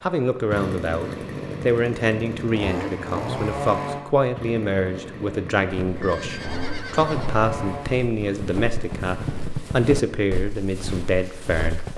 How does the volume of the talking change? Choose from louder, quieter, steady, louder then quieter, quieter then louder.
steady.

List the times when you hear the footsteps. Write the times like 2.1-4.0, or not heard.
5.7-11.9.